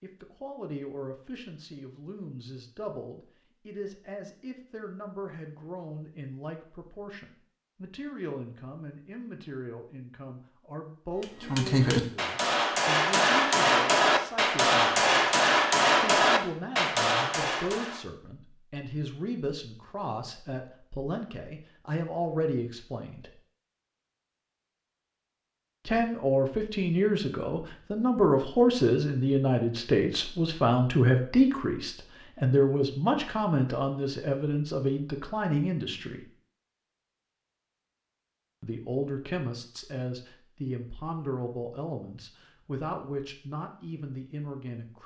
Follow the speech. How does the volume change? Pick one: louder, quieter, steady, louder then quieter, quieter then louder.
louder then quieter.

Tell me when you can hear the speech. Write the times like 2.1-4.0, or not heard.
0.0-15.1, 16.0-23.4, 25.9-36.2, 38.6-45.0.